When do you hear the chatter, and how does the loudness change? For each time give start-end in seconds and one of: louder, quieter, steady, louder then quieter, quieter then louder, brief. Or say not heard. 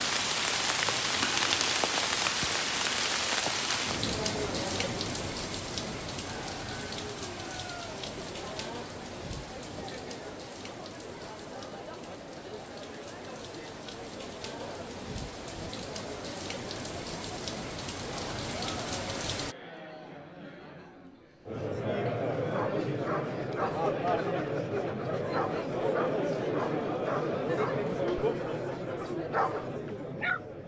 6.2-30.6 louder.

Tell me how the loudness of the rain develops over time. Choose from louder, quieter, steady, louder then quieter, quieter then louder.
quieter then louder.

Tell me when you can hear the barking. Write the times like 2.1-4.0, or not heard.
22.4-30.4.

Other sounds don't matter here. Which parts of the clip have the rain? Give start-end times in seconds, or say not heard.
0.0-19.6.